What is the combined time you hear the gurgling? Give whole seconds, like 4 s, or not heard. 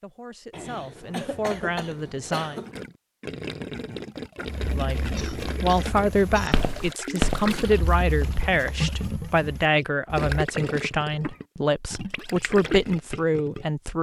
11 s.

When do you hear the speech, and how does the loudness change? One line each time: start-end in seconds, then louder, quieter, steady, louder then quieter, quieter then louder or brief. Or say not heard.
0.0-2.6 brief
4.7-13.9 steady.